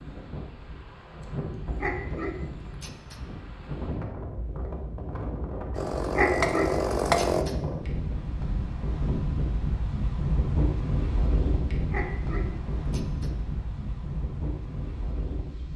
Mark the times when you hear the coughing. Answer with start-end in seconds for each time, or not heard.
not heard.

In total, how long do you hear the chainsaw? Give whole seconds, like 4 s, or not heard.
2 s.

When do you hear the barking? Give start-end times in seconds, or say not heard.
1.8-3.2, 6.1-7.6, 11.8-13.3.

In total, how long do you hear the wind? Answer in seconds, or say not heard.
16 s.